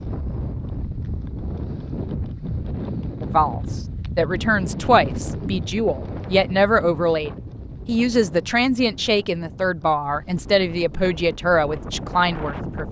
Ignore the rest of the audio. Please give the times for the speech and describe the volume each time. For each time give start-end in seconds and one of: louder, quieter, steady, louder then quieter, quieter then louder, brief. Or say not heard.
3.2-12.8 steady.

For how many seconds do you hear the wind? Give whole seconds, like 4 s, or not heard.
13 s.